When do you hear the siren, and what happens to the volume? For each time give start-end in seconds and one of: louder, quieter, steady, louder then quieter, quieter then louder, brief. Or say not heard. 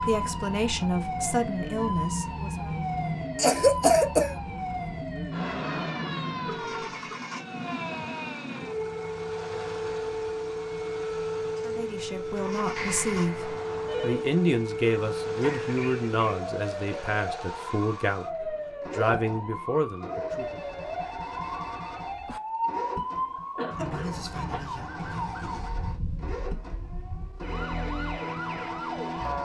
0.0-29.4 steady.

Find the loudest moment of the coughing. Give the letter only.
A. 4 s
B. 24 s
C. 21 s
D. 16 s
A.